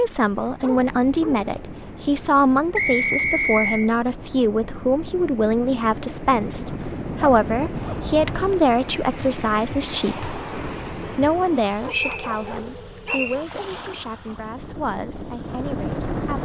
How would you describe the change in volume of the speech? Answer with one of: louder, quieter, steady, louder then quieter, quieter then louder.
quieter.